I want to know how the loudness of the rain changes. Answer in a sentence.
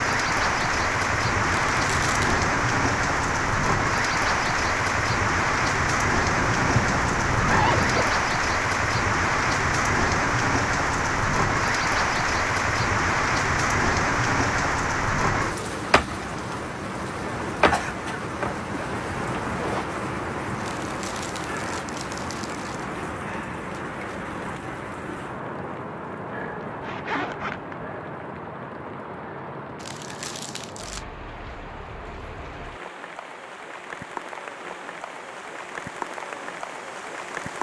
The loudness of the rain goes down.